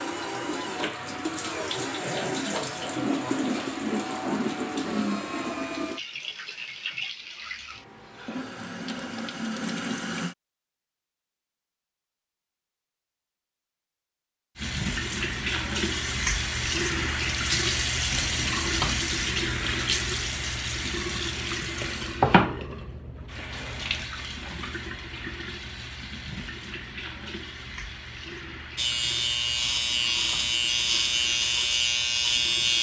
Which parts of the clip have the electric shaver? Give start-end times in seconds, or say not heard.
28.8-32.7.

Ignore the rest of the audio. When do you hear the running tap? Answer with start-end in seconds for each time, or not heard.
0.0-10.3, 14.6-32.7.